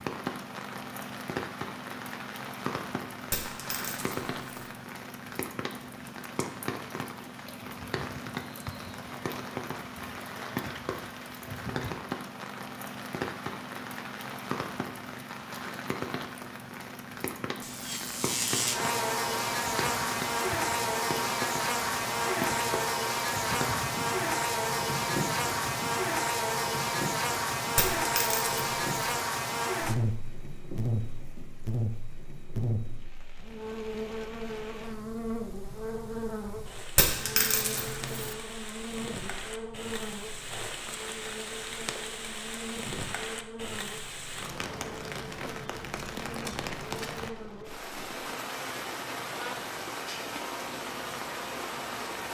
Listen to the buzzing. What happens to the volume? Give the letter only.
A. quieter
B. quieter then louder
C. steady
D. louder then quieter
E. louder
A.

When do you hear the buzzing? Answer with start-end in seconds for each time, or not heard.
17.6-52.2.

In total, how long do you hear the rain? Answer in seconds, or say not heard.
52 s.